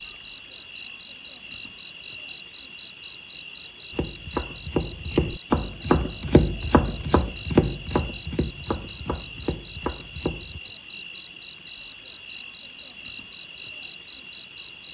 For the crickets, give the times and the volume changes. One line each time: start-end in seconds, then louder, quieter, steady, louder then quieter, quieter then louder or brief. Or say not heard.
0.0-14.8 steady.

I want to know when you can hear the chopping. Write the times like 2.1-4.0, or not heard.
3.9-10.6.